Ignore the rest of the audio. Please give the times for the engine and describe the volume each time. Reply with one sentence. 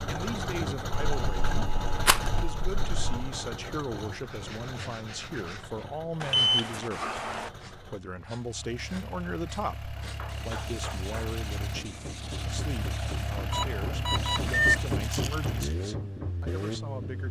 The engine can be heard from 0.0 to 17.2 s, getting quieter then louder.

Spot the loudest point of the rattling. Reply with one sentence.
The loudest moment of the rattling is at 2 seconds.